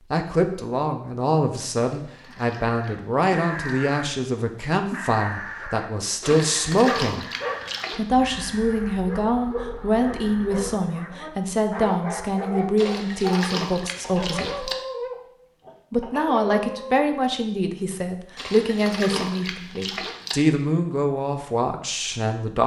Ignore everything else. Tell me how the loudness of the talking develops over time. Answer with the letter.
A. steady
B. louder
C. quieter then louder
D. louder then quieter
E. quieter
A.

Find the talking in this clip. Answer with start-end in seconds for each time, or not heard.
0.1-7.2, 7.9-14.7, 15.9-22.6.